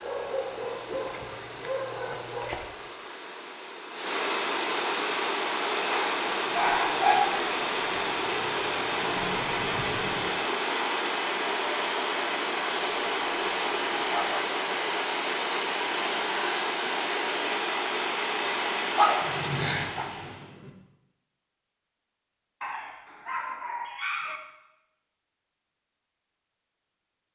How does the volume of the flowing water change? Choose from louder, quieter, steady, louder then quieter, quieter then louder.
louder.